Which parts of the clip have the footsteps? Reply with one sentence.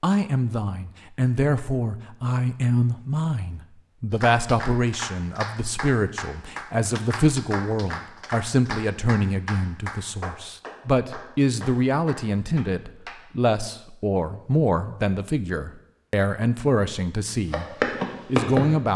The footsteps can be heard from 17.5 to 18.6 s.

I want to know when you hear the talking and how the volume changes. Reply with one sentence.
You can hear the talking from 0.0 to 17.6 s, at a steady volume; and briefly from 18.2 to 18.9 s.